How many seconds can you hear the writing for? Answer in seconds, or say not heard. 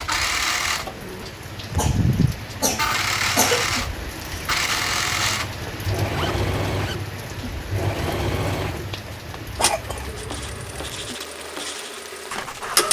3 s.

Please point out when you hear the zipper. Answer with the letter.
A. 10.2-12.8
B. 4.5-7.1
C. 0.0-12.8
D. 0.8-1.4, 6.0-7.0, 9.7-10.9
D.